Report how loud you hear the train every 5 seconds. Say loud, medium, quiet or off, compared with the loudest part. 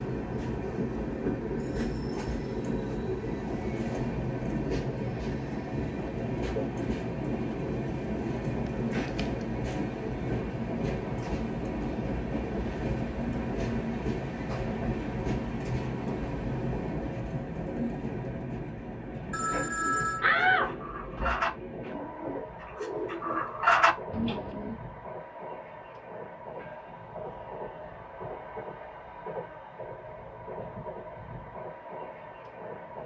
loud, loud, loud, loud, medium, medium, medium.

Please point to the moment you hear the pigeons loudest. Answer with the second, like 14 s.
24 s.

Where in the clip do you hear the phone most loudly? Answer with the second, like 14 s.
20 s.